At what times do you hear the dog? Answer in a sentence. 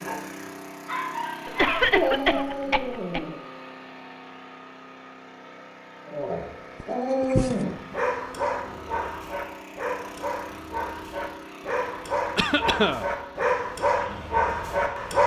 You can hear the dog from 0.0 to 3.4 s and from 6.0 to 15.2 s.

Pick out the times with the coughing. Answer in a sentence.
The coughing can be heard from 1.4 to 3.2 s, from 6.8 to 8.0 s and from 12.3 to 13.1 s.